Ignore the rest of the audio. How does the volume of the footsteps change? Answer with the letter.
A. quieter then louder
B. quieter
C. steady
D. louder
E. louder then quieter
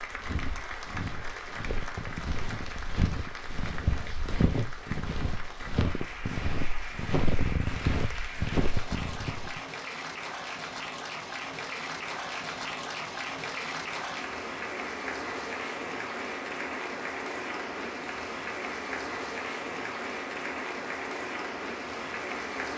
D.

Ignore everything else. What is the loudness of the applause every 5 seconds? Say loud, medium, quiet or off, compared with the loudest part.
medium, medium, loud, loud, loud.